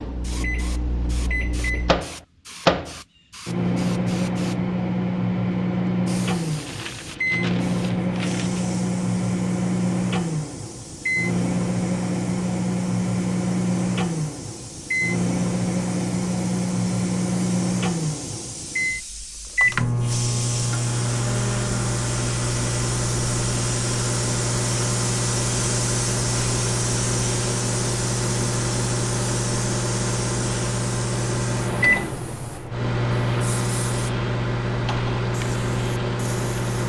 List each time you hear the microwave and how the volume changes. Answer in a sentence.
The microwave can be heard from 0.0 to 36.8 s, at a steady volume.